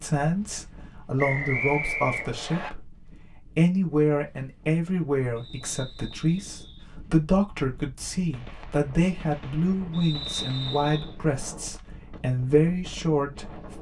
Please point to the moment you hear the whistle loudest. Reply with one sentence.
The loudest moment of the whistle is at 2 seconds.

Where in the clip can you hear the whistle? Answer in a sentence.
You can hear the whistle from 1.1 to 2.7 s, from 5.3 to 6.8 s and from 9.9 to 11.2 s.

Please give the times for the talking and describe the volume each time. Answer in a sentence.
You can hear the talking briefly from 0.0 to 3.0 s; and from 3.5 to 13.7 s, at a steady volume.